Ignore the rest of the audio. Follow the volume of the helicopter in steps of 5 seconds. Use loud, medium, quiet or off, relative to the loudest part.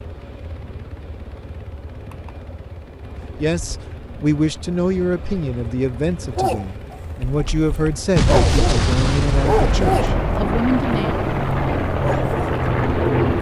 quiet, quiet, loud.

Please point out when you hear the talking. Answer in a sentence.
You can hear the talking from 3.4 to 11.3 s.